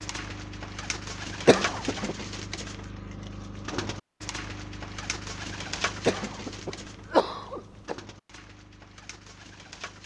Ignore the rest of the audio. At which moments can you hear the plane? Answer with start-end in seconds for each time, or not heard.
not heard.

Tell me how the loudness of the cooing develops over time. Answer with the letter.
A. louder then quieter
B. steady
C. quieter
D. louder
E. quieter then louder
C.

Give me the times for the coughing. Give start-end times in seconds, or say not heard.
1.4-2.1, 6.0-8.0.